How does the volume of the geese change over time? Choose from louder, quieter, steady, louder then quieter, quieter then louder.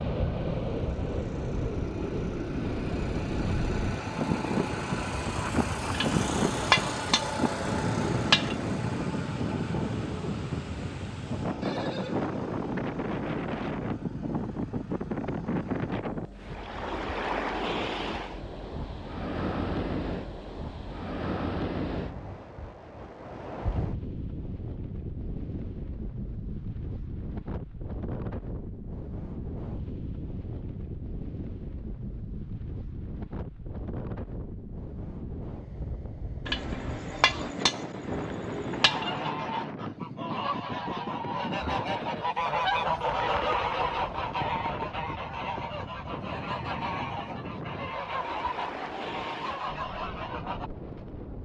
louder then quieter.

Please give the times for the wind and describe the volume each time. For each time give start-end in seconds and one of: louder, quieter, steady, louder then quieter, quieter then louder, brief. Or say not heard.
0.0-51.4 quieter.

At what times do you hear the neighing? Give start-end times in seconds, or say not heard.
11.6-12.3.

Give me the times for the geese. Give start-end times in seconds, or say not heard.
38.7-50.7.